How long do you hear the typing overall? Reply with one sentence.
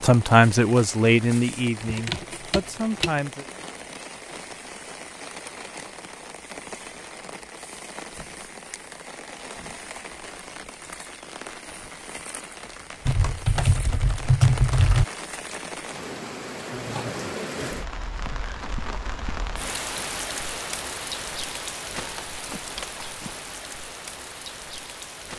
You can hear the typing for 3 seconds altogether.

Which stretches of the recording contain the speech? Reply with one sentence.
The speech can be heard from 0.0 to 3.5 s.